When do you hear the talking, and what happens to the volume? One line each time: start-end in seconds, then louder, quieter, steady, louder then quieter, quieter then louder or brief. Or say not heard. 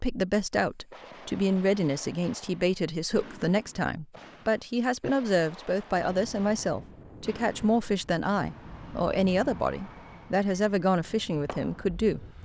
0.0-12.2 steady.